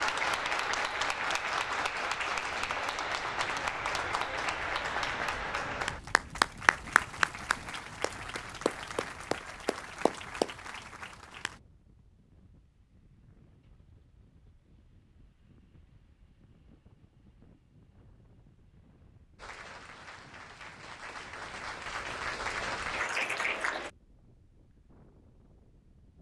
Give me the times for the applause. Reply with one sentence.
The applause can be heard from 0.0 to 11.6 s and from 19.4 to 23.9 s.